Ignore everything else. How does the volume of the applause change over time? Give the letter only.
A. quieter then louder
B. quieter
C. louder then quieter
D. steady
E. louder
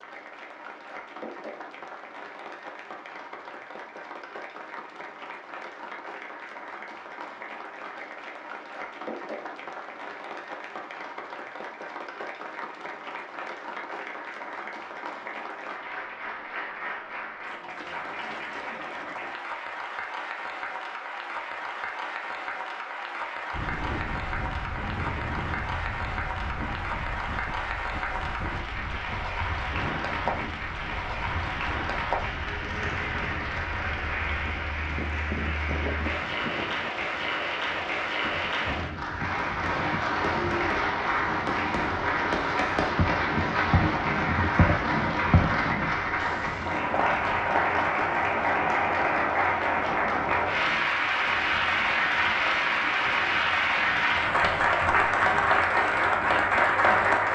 E.